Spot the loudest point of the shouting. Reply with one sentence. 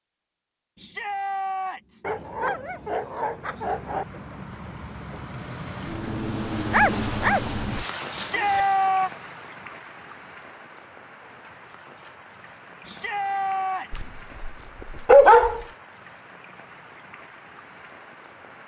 The volume of the shouting peaks at 9 seconds.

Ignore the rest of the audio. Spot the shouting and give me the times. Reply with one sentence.
The shouting can be heard from 0.8 to 2.0 s, from 8.2 to 9.1 s and from 12.8 to 14.1 s.